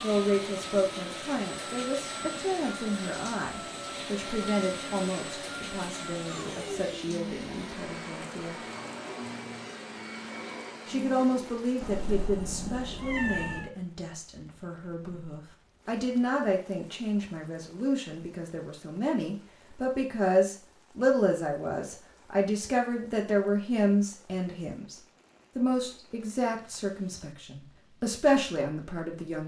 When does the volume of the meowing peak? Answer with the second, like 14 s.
13 s.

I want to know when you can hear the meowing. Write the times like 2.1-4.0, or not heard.
11.8-13.7.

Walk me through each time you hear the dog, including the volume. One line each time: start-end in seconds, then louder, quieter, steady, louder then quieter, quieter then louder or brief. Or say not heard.
not heard.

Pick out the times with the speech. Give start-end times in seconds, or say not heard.
0.0-8.6, 10.8-24.9, 25.6-29.4.